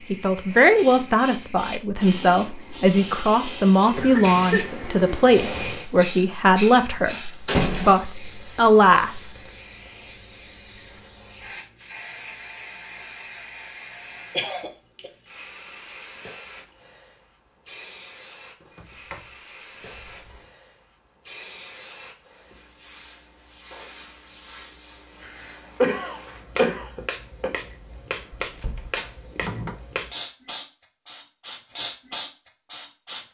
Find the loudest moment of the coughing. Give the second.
26 s.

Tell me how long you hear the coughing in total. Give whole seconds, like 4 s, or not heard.
4 s.